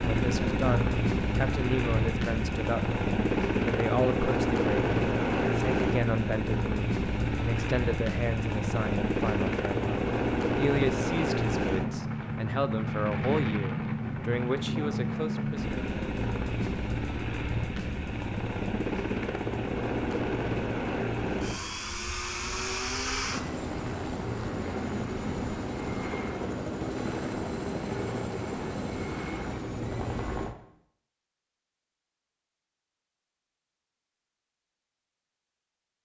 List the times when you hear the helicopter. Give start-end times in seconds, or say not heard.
0.0-30.6.